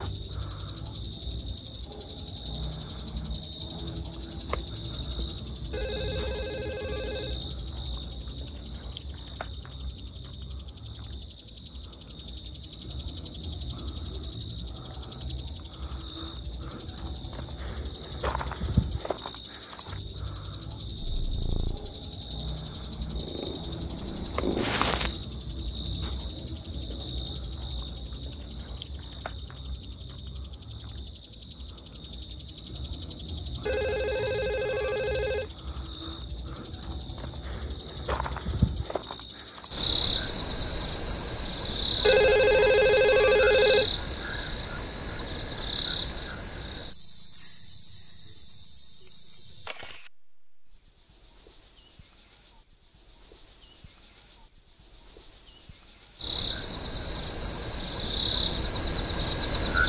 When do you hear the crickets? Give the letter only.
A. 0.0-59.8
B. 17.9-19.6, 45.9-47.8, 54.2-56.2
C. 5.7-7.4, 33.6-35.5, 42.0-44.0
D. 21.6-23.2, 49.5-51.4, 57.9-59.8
A.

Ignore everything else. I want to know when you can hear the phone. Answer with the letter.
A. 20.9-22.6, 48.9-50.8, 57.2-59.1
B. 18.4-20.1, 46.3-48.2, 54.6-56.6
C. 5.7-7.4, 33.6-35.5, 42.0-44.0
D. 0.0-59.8
C.